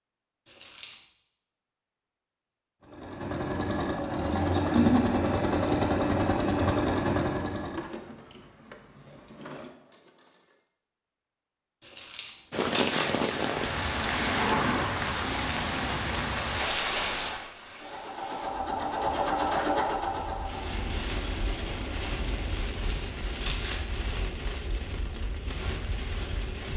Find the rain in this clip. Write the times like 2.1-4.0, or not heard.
12.5-26.7.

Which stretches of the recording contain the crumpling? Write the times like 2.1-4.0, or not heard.
0.5-0.9, 11.8-14.1, 22.6-24.4.